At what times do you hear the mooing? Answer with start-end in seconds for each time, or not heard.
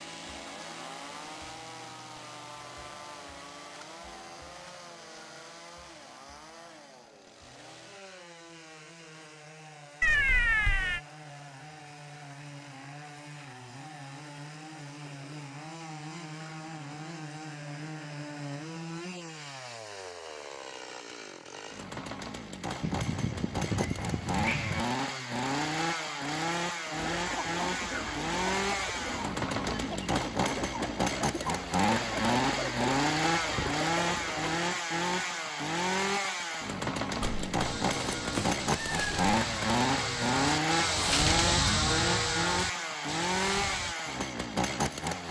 37.6-44.0.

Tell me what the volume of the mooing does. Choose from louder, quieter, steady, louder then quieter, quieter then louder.
louder then quieter.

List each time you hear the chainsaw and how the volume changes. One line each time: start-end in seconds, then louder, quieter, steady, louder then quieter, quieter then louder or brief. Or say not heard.
0.0-45.2 louder.